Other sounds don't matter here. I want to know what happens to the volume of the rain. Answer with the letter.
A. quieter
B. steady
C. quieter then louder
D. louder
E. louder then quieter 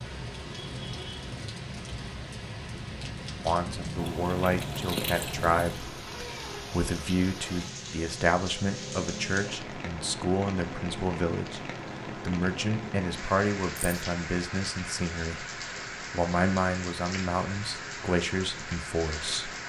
B.